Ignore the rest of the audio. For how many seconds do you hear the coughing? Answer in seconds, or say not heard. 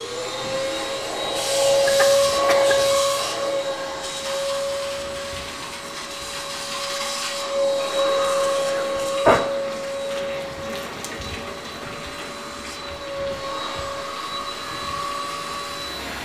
2 s.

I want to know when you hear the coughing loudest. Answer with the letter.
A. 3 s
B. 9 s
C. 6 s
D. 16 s
B.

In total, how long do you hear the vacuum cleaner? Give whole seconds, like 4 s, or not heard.
16 s.